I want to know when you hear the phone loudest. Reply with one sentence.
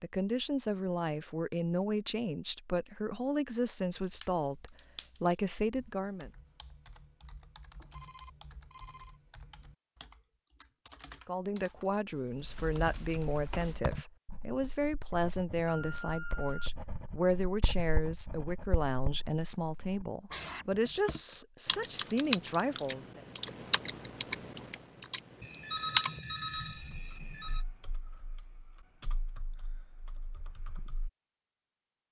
The loudest moment of the phone is at 26 seconds.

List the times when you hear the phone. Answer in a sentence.
You can hear the phone from 7.9 to 9.2 s, from 15.7 to 16.8 s and from 25.4 to 27.6 s.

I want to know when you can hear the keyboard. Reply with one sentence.
The keyboard can be heard from 4.0 to 14.1 s and from 21.1 to 31.1 s.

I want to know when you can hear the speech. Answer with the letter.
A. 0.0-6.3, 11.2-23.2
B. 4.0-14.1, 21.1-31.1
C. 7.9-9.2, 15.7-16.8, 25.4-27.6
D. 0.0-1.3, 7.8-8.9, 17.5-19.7
A.